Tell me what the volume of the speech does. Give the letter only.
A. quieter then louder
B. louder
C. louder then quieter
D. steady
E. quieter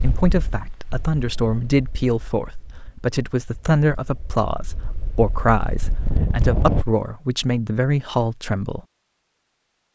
D.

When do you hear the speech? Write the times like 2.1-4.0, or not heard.
0.0-8.8.